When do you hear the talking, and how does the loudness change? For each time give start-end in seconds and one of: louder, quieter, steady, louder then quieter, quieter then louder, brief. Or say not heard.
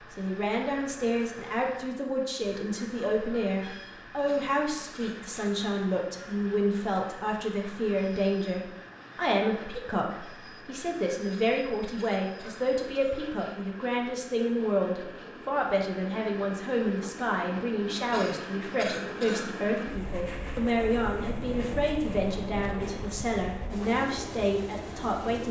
0.0-25.4 steady.